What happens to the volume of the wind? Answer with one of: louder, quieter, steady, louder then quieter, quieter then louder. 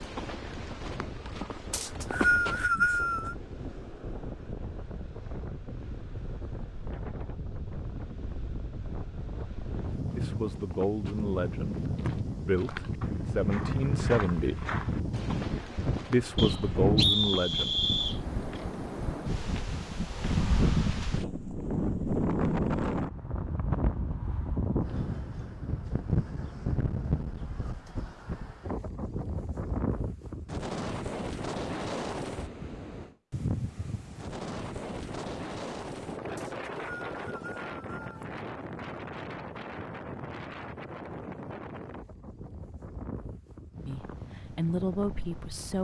louder then quieter.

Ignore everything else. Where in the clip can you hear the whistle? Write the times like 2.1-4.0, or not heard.
1.7-3.4, 16.4-18.2, 36.4-38.2.